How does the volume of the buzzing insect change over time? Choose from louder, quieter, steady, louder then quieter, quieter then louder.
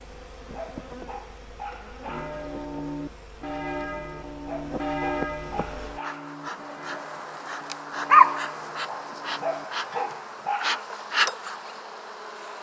louder then quieter.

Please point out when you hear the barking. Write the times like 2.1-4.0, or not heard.
0.5-2.4, 4.5-6.3, 9.4-10.9.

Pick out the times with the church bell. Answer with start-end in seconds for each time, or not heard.
2.0-10.1.